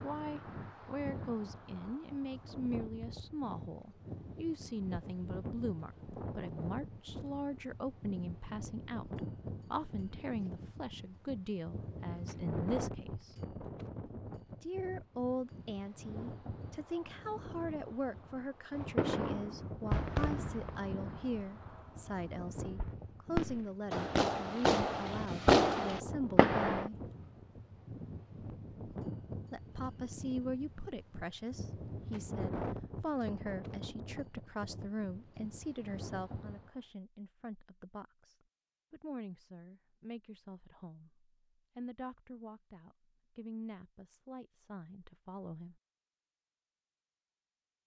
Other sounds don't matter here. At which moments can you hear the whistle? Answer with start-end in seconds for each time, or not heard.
not heard.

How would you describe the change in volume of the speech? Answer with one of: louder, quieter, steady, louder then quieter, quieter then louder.
quieter.